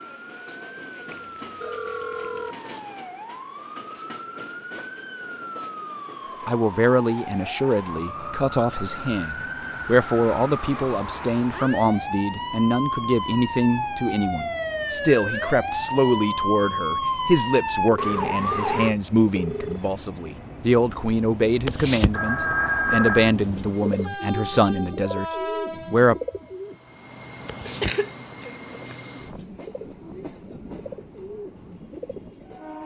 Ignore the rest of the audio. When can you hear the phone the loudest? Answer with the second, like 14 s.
23 s.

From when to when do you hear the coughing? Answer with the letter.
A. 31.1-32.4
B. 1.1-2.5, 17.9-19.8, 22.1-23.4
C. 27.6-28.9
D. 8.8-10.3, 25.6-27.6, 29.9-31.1
C.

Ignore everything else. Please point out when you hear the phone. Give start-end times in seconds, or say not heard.
1.1-2.5, 17.9-19.8, 22.1-23.4.